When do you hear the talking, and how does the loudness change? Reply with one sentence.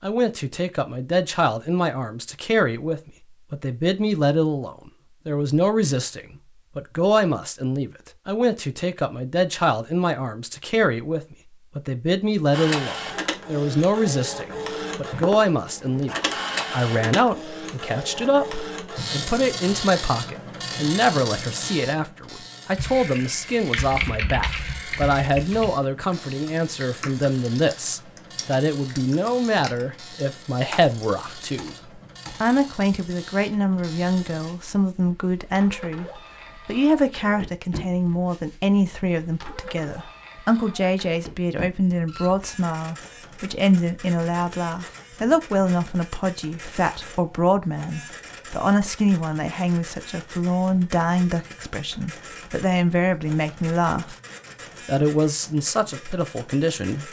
The talking can be heard from 0.0 to 16.1 s, at a steady volume; from 16.7 to 54.1 s, at a steady volume; and briefly from 54.9 to 57.0 s.